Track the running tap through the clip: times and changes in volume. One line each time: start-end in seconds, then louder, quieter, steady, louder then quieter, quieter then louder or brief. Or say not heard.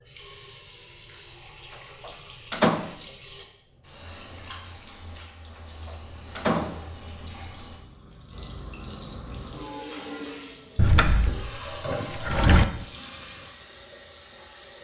0.0-14.8 louder.